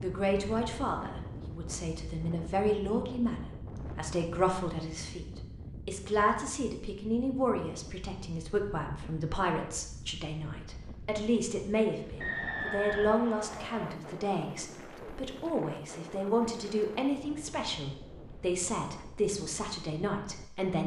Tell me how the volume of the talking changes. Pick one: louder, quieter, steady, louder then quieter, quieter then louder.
steady.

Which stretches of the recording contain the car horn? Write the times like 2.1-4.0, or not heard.
not heard.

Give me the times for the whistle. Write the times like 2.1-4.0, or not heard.
12.2-13.9.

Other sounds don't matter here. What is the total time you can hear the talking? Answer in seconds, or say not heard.
21 s.